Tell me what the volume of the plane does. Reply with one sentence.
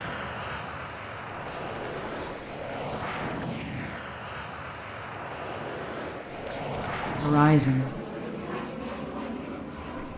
The loudness of the plane stays about the same.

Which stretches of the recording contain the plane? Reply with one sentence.
You can hear the plane from 0.0 to 10.1 s.